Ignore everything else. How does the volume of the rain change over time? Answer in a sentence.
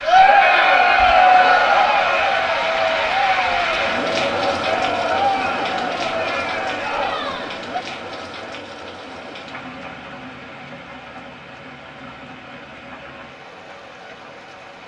The volume of the rain goes down.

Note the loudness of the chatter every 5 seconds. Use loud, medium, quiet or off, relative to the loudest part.
loud, medium, off.